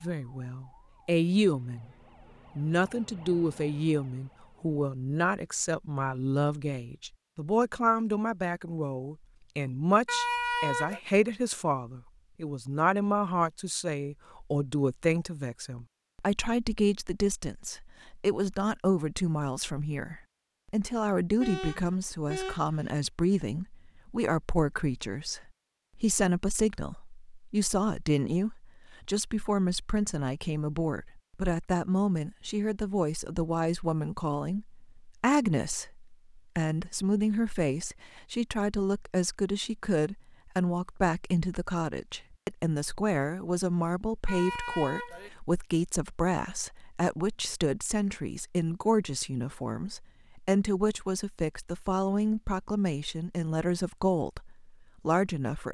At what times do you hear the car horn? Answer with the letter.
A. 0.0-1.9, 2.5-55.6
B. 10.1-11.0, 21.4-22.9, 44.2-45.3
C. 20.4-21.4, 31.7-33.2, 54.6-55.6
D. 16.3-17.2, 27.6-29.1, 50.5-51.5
B.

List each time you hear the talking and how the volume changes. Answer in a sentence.
The talking can be heard briefly from 0.0 to 1.9 s; and from 2.5 to 55.6 s, at a steady volume.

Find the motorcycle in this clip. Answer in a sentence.
The motorcycle can't be heard in this clip.